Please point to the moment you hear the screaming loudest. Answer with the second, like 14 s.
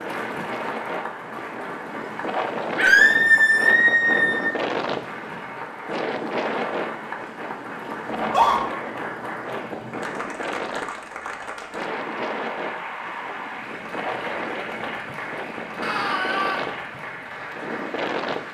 3 s.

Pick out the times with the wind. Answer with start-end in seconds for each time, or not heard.
0.0-18.4.